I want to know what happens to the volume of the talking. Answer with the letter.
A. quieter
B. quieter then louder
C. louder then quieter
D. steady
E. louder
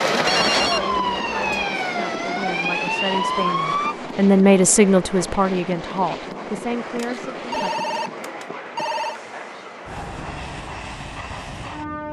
C.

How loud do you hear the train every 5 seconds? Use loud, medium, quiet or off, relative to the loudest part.
loud, medium, medium.